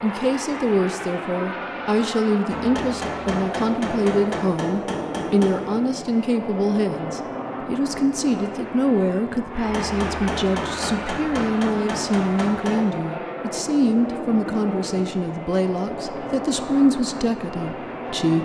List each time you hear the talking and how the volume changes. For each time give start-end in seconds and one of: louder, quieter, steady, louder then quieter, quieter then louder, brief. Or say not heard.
0.0-18.4 steady.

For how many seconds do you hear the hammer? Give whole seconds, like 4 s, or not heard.
6 s.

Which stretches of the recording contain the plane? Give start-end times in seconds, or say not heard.
0.0-18.4.